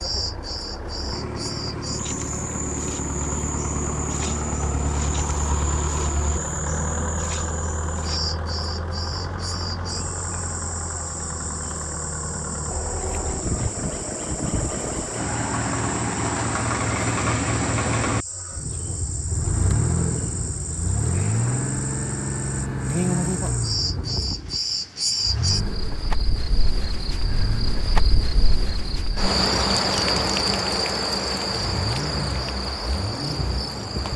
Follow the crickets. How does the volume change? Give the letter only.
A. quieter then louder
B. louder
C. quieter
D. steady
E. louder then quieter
B.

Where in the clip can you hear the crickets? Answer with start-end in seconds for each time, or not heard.
0.0-34.1.